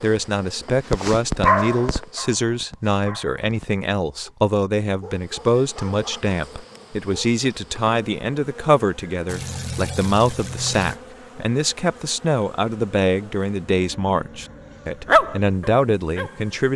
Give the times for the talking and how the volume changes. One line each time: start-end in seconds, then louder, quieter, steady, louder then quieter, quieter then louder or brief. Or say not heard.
0.0-16.7 steady.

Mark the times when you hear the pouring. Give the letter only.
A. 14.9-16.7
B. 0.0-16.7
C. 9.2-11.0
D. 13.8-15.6
C.